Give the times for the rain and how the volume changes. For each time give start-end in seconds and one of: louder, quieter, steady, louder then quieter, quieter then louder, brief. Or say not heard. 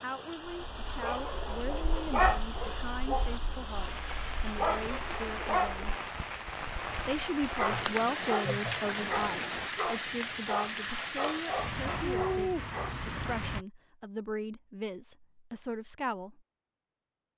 0.0-13.7 louder.